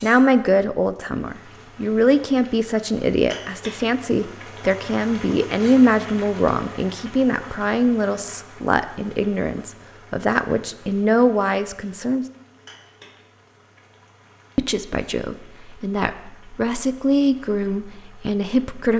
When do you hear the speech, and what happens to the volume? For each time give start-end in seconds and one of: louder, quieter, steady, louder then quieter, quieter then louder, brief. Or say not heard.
0.0-12.2 steady
14.6-18.9 louder then quieter.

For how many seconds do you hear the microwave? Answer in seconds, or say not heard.
not heard.